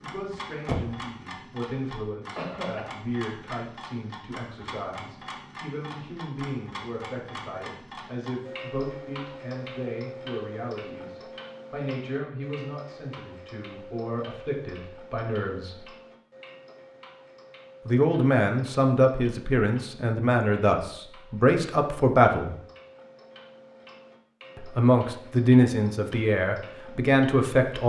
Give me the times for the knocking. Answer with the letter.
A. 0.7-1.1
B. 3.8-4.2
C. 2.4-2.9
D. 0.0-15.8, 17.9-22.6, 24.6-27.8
A.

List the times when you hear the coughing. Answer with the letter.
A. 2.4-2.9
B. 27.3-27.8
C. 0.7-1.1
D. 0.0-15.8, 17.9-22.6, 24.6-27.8
A.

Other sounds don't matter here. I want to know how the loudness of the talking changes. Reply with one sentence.
The loudness of the talking goes up.